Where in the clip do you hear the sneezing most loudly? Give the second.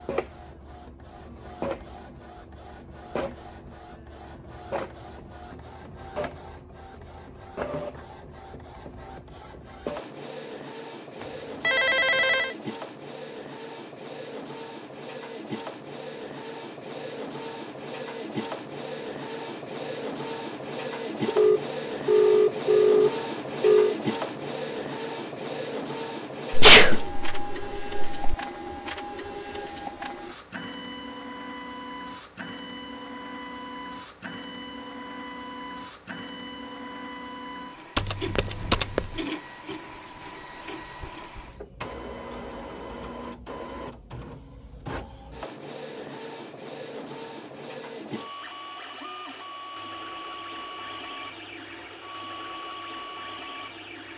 27 s.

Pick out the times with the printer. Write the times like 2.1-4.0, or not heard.
0.0-54.1.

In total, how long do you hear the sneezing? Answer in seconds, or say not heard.
2 s.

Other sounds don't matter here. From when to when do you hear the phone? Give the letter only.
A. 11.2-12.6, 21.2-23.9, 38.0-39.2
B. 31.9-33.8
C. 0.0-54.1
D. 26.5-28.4
A.